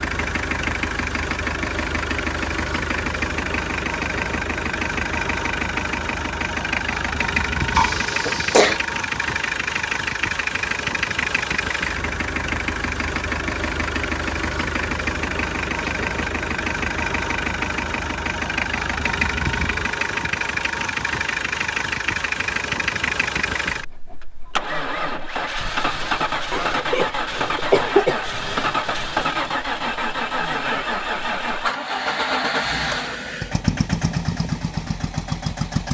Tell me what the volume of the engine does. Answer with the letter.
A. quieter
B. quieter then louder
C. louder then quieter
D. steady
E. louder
D.